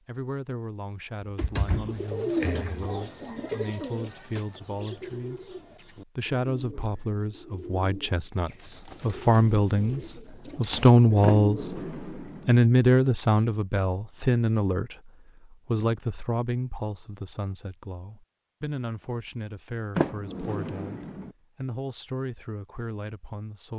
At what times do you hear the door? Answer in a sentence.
You can hear the door from 1.2 to 2.9 s, from 11.2 to 12.6 s and from 19.9 to 21.3 s.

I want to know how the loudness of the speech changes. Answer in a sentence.
The volume of the speech goes up, then down.